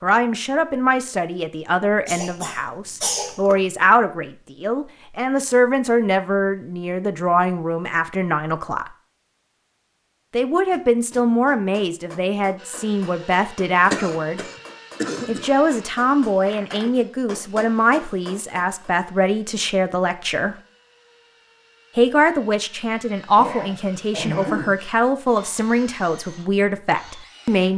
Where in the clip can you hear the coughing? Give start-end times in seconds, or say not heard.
2.0-3.6, 13.9-15.5, 23.4-24.8.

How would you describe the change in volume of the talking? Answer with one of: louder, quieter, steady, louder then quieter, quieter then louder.
steady.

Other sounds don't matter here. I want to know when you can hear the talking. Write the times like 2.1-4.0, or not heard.
0.0-8.9, 10.3-14.4, 15.2-20.6, 21.9-27.7.